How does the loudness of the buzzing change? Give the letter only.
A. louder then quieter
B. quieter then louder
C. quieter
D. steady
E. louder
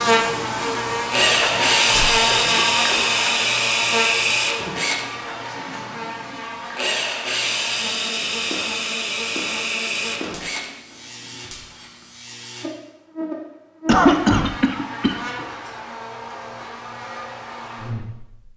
C.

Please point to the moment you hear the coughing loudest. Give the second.
14 s.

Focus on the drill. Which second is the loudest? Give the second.
2 s.